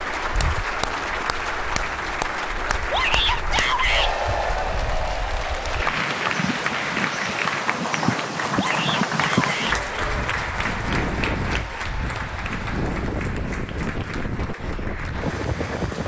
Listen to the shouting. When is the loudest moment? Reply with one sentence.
The loudest moment of the shouting is at 3 seconds.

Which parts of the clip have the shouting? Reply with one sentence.
The shouting can be heard from 2.9 to 4.1 s and from 8.6 to 9.8 s.